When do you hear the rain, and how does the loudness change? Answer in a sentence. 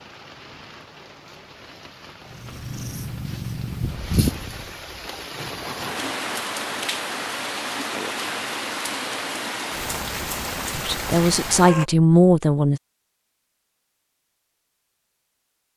You can hear the rain from 0.0 to 11.8 s, getting louder.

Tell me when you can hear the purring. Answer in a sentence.
The purring can be heard from 2.2 to 4.8 s.